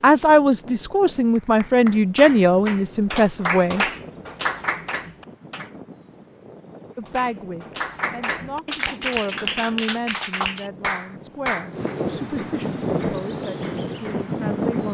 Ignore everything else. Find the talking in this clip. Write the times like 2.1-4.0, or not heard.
0.0-3.9, 7.0-14.9.